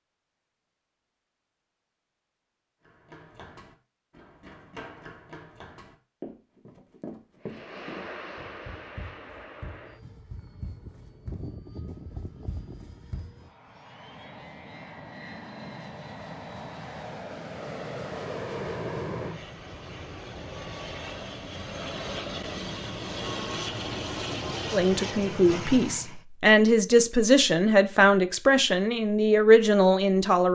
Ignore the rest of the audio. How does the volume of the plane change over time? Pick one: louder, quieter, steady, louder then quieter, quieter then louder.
louder.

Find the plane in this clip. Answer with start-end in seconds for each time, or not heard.
7.4-26.2.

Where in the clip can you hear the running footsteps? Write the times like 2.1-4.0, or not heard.
2.9-13.3.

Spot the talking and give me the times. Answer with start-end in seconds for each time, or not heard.
24.7-30.4.